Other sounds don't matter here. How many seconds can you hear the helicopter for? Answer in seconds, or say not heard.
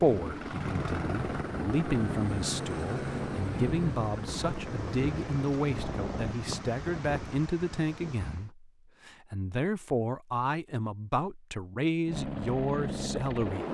8 s.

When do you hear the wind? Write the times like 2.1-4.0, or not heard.
0.0-8.5.